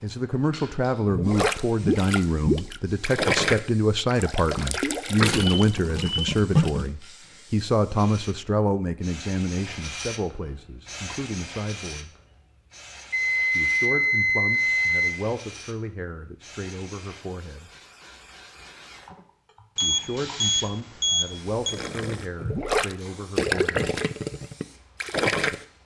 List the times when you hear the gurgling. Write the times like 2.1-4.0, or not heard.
1.1-7.0, 21.6-25.6.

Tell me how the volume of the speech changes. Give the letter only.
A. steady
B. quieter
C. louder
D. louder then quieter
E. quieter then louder
B.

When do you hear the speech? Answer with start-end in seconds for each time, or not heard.
0.0-12.1, 13.5-17.7, 19.8-23.9.